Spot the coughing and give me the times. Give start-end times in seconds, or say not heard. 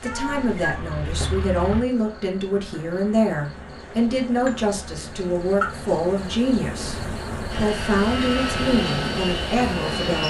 not heard.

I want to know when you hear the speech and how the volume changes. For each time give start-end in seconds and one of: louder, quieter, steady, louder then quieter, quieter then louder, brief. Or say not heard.
0.0-10.2 steady.